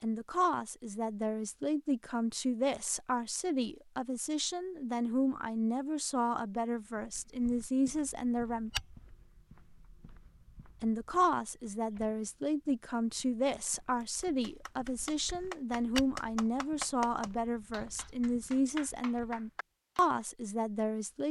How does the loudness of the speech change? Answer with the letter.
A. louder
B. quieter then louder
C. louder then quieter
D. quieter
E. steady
E.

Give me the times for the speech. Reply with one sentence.
You can hear the speech from 0.0 to 8.7 s and from 10.8 to 21.2 s.